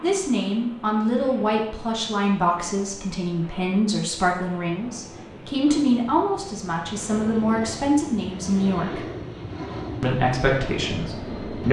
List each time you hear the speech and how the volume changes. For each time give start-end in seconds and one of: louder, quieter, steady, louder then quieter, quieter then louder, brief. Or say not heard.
0.0-9.1 steady
10.0-11.6 brief.